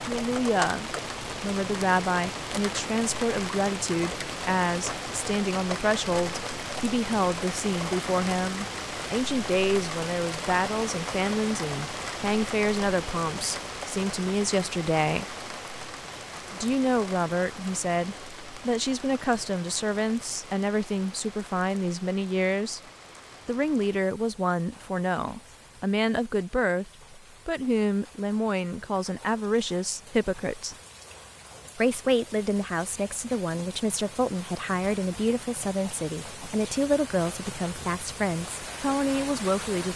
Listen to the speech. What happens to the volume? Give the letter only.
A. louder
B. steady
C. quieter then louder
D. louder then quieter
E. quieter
B.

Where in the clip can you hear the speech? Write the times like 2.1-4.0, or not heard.
0.1-15.2, 16.5-22.8, 23.4-30.8, 31.8-39.9.